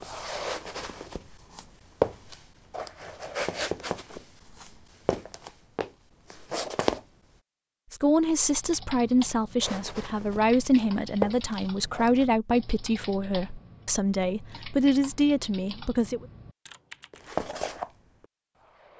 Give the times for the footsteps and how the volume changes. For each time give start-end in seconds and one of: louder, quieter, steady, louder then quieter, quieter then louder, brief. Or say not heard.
0.0-7.0 louder then quieter
9.6-12.2 brief
17.1-18.9 brief.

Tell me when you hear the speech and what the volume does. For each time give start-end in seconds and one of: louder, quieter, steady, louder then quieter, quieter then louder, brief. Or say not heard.
7.9-16.2 steady.